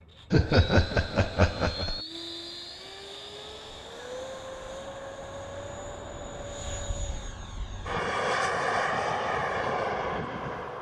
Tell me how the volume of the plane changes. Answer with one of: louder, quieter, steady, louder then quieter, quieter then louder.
louder.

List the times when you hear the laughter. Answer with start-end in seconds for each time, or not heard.
0.3-2.0.